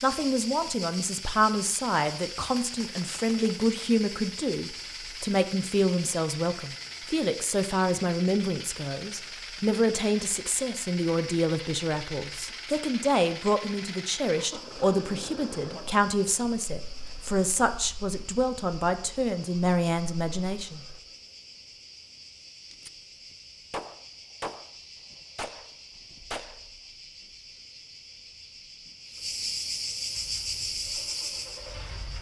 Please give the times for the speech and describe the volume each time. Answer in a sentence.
You can hear the speech from 0.0 to 20.8 s, at a steady volume.